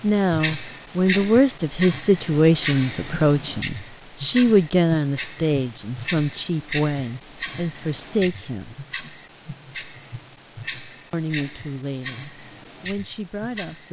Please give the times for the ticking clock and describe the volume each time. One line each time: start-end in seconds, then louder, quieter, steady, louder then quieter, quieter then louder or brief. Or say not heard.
0.0-13.8 quieter.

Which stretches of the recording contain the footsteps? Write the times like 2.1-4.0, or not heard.
not heard.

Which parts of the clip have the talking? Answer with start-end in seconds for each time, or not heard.
0.0-8.8, 11.1-13.8.